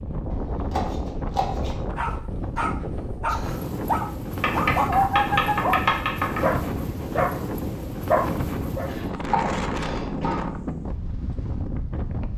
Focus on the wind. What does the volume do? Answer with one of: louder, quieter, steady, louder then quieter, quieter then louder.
steady.